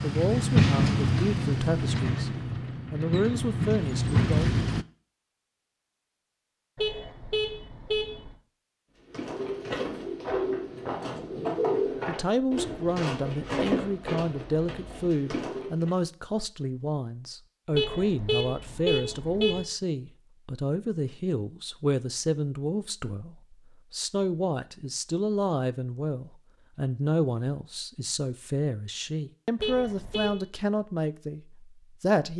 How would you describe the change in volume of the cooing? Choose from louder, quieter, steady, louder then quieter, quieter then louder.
quieter.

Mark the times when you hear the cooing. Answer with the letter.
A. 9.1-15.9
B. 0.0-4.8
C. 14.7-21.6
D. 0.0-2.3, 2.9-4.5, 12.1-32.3
A.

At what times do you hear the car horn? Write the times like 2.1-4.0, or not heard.
6.8-8.3, 17.7-19.6, 29.6-30.4.